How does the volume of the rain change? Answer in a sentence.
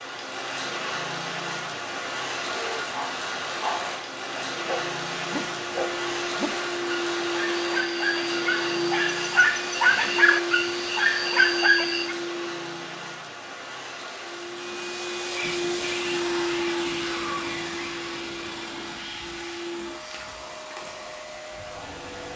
The volume of the rain goes down.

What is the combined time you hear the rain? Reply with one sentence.
The rain can be heard for 22 seconds in total.